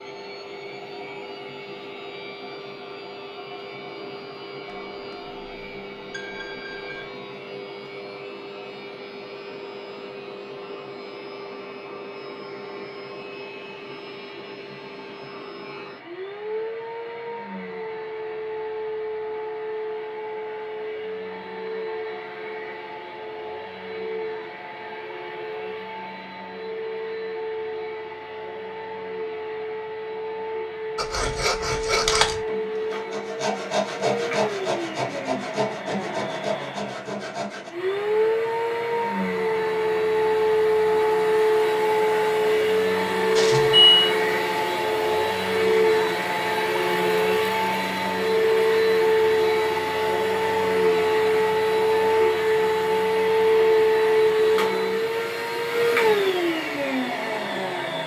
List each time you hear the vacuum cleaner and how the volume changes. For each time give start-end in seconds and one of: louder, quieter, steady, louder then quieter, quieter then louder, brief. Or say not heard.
0.0-58.0 louder.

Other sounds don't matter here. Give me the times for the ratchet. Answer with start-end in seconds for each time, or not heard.
not heard.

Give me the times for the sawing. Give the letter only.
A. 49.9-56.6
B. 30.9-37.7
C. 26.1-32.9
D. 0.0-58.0
B.